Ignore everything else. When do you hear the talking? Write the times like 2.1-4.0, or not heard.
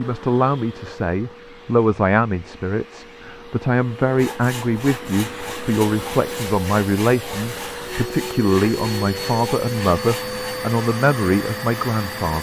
0.0-12.3.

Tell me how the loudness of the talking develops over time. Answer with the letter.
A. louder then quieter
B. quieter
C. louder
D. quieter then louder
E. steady
E.